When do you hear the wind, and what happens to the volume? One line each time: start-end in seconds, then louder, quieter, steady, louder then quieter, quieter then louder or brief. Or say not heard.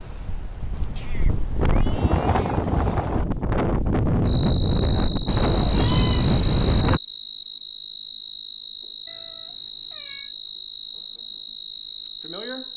0.0-7.0 louder.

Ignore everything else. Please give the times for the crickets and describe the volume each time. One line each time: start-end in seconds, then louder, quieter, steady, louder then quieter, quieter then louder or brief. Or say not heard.
4.2-12.7 steady.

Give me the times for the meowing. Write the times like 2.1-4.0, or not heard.
0.9-2.6, 5.2-6.8, 9.1-10.3.